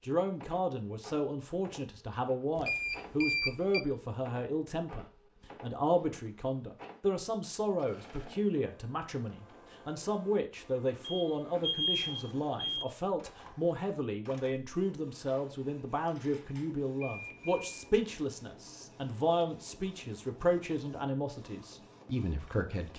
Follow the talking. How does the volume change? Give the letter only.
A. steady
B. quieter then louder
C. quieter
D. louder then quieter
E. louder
A.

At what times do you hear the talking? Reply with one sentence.
You can hear the talking from 0.1 to 22.9 s.